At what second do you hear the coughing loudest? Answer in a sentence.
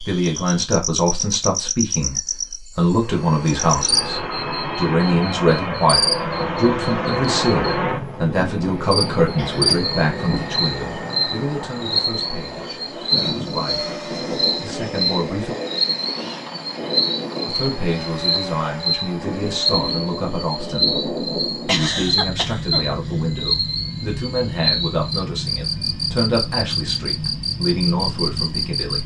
The volume of the coughing peaks at 22 seconds.